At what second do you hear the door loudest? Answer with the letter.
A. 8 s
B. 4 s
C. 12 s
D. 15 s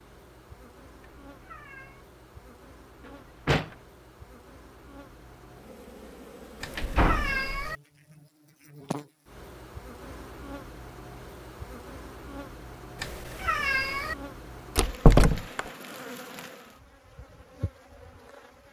D.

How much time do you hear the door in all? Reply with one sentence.
You can hear the door for 2 seconds altogether.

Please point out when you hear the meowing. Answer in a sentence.
You can hear the meowing from 1.2 to 2.0 s, from 6.6 to 7.8 s and from 12.9 to 14.2 s.